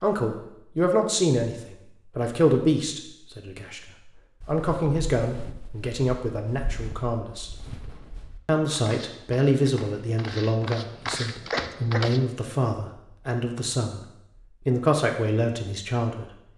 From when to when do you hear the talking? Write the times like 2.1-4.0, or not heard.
0.0-7.5, 8.4-14.0, 14.6-16.2.